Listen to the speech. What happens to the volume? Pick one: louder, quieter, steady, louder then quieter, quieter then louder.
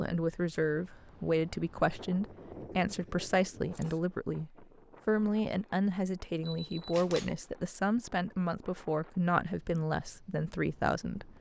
steady.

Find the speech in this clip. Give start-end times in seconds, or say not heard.
0.0-11.3.